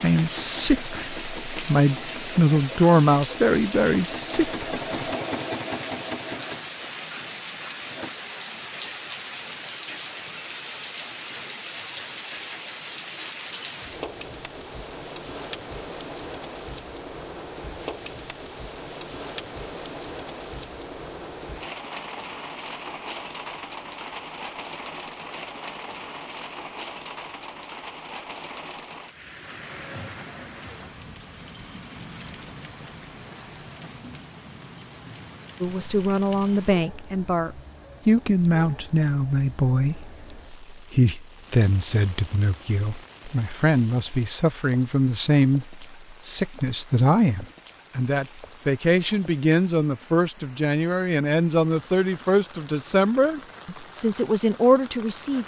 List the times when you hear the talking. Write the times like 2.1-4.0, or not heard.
0.0-4.7, 35.6-55.4.